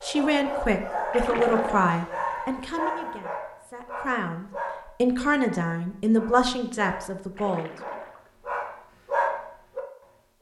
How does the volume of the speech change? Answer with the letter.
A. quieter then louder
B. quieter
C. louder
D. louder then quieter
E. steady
A.